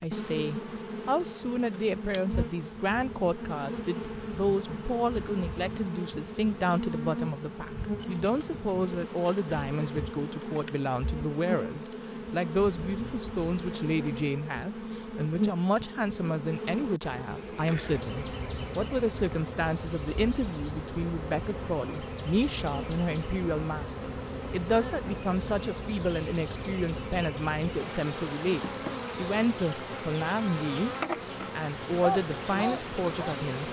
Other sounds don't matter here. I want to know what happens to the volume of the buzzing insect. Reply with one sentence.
The loudness of the buzzing insect stays about the same.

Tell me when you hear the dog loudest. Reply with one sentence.
The loudest moment of the dog is at 32 seconds.